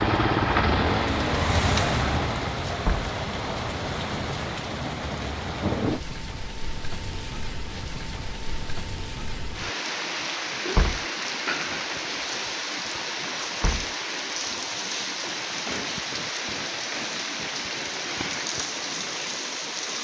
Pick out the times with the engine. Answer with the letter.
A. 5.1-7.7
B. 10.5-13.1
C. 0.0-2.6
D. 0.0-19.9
C.